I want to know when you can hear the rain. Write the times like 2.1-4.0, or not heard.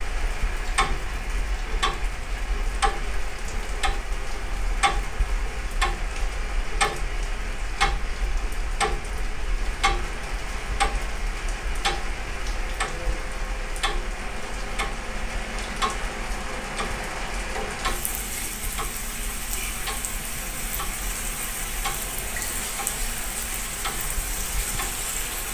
0.0-25.4.